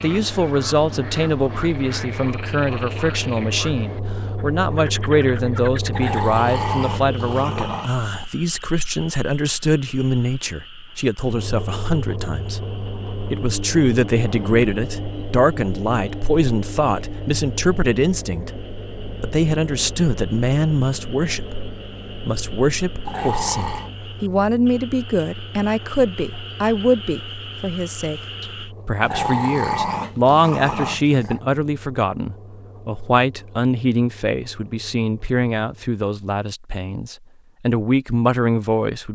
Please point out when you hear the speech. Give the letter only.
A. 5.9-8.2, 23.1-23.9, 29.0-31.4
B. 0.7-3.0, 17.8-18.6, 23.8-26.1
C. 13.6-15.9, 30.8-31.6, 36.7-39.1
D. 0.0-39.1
D.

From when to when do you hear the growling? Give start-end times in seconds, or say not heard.
5.9-8.2, 23.1-23.9, 29.0-31.4.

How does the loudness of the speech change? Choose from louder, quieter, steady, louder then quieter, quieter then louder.
steady.